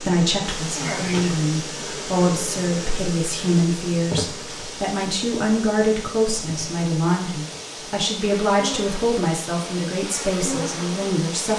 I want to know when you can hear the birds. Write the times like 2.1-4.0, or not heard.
not heard.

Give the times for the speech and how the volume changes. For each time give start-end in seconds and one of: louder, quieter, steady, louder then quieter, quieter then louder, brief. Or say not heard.
0.0-11.5 steady.